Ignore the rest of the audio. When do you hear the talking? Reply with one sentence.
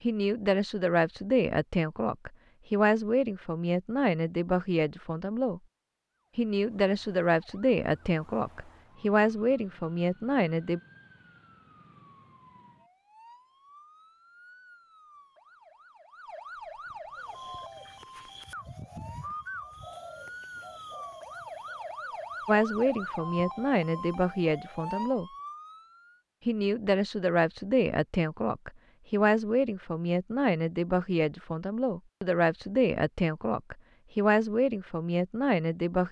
You can hear the talking from 0.0 to 5.6 s, from 6.3 to 10.8 s, from 22.4 to 25.3 s and from 26.4 to 36.0 s.